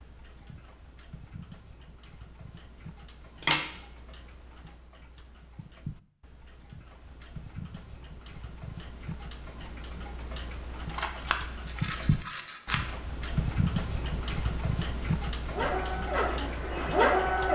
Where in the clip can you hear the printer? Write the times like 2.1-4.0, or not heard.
15.5-17.4.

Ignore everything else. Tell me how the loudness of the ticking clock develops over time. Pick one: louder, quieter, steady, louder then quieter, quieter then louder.
louder.